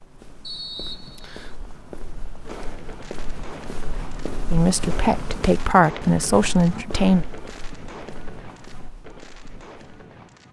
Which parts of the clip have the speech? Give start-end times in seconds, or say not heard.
4.5-7.2.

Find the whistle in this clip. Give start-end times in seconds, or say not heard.
0.4-1.6.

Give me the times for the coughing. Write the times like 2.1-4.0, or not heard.
not heard.